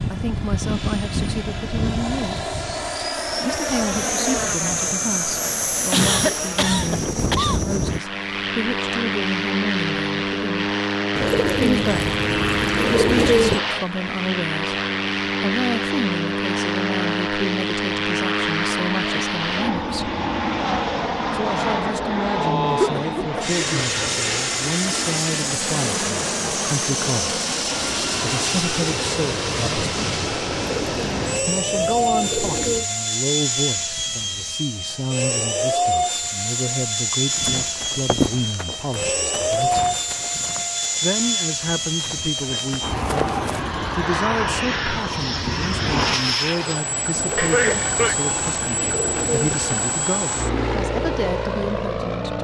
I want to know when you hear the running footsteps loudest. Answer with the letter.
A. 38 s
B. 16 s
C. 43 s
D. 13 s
A.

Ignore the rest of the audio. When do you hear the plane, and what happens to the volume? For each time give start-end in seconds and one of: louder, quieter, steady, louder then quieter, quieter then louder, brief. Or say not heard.
0.0-52.3 steady.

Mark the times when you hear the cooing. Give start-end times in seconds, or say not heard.
11.2-13.6, 30.5-32.9, 47.1-49.9.